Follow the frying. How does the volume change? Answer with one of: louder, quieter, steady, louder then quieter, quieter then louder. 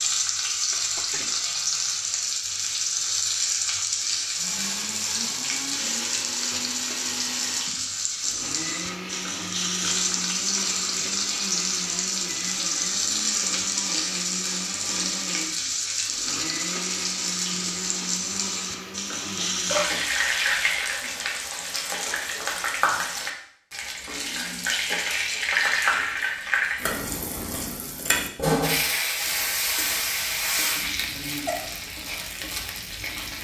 steady.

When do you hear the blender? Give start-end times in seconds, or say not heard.
4.3-19.9.